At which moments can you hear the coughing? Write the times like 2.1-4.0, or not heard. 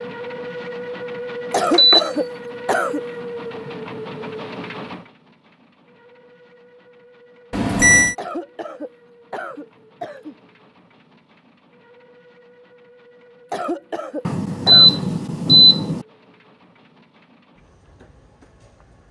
1.5-3.0, 8.2-10.3, 13.5-15.0.